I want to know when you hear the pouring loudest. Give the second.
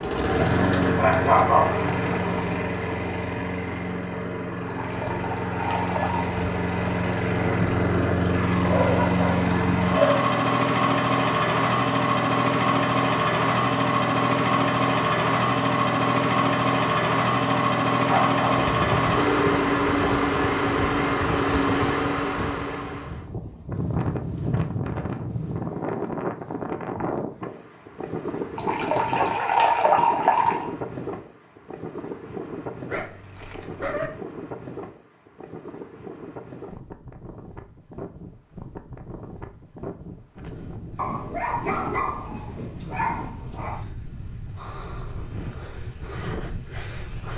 30 s.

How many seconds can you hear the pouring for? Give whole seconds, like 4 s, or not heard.
4 s.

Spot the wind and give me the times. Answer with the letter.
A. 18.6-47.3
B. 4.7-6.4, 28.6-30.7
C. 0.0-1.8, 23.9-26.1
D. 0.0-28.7
A.